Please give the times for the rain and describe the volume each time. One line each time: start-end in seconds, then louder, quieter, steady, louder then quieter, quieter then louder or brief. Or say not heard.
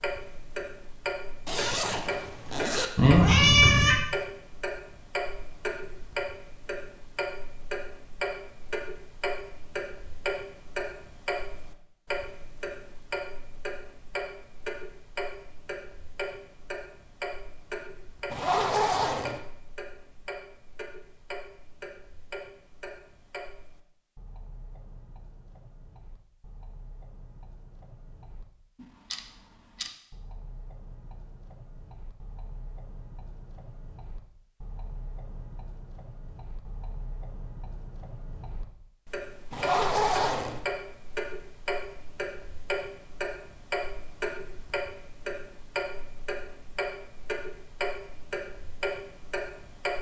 not heard.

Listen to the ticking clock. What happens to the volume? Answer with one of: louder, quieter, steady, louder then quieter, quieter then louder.
quieter then louder.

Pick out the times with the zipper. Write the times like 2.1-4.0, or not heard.
1.4-2.9, 18.3-19.4, 39.5-40.6.